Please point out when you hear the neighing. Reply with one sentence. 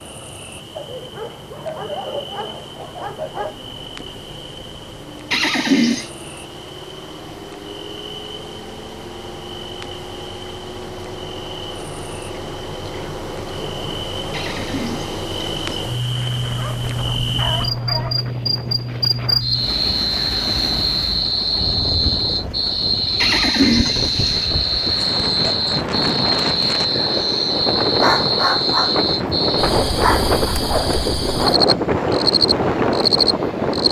The neighing can be heard from 5.3 to 6.1 s, from 14.3 to 15.8 s and from 23.2 to 24.5 s.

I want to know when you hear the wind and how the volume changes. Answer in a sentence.
You can hear the wind from 15.9 to 33.8 s, getting louder.